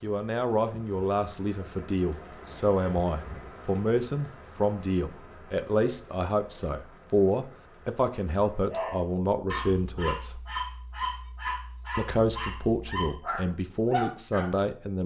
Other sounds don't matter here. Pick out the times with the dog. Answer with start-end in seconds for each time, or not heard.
8.7-14.5.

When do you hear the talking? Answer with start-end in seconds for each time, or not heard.
0.0-10.4, 11.9-15.0.